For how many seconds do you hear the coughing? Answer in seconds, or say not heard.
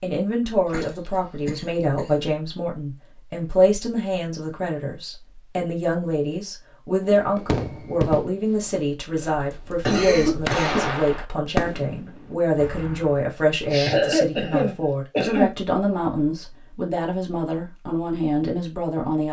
5 s.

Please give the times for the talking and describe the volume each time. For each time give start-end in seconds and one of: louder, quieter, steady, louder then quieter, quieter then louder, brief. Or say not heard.
0.0-19.2 steady.